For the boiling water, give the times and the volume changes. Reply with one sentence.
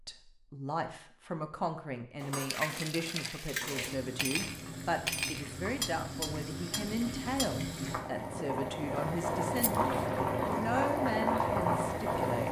You can hear the boiling water from 3.6 to 12.4 s, getting louder.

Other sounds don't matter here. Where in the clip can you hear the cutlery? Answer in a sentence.
The cutlery can be heard from 2.2 to 7.5 s.